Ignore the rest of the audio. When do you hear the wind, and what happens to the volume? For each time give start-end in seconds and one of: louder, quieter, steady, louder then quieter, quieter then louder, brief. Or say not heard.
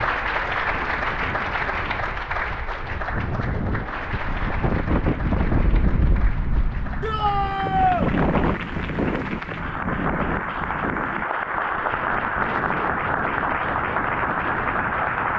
0.0-15.3 louder then quieter.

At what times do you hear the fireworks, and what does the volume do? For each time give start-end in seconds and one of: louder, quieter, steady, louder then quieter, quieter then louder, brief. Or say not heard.
not heard.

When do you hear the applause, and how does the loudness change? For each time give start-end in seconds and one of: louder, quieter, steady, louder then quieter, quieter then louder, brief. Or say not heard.
0.0-15.3 quieter then louder.